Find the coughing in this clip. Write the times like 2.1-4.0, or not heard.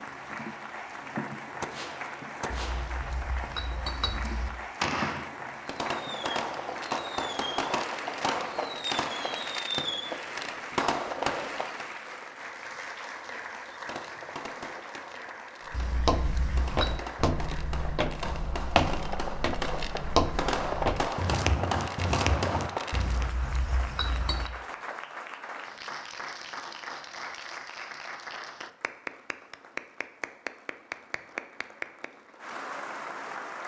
not heard.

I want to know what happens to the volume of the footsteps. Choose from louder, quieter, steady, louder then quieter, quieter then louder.
steady.